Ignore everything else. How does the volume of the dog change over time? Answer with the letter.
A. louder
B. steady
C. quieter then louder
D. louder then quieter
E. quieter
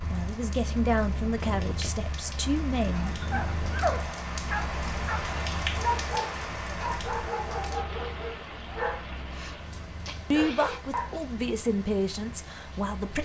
E.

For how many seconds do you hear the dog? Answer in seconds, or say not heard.
8 s.